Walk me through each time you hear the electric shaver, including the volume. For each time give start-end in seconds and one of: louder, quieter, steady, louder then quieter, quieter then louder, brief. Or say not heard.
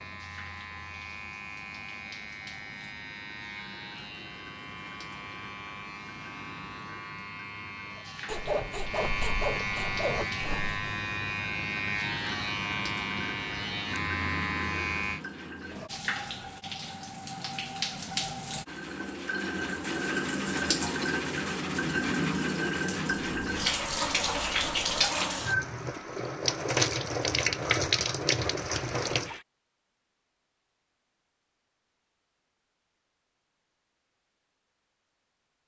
0.0-15.2 louder.